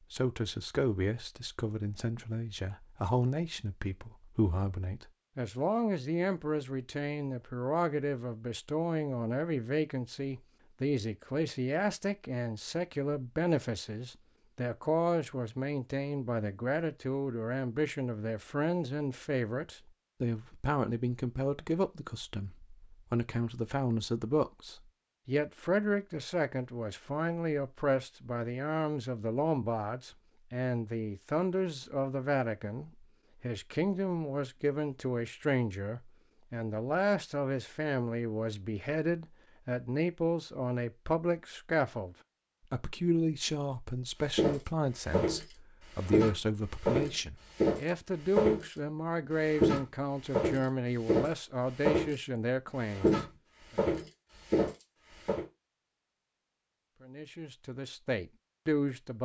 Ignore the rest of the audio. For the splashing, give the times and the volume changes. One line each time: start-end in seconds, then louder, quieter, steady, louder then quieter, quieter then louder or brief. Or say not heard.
not heard.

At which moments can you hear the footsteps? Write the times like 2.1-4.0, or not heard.
44.3-48.8, 49.5-52.2, 52.9-55.5.